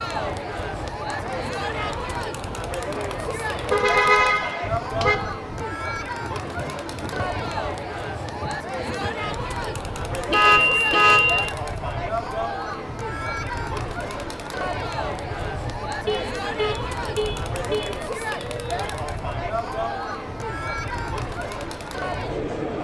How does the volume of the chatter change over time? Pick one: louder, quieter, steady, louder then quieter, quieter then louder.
steady.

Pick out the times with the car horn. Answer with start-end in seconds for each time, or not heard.
3.7-5.2, 10.3-11.6, 16.0-18.1.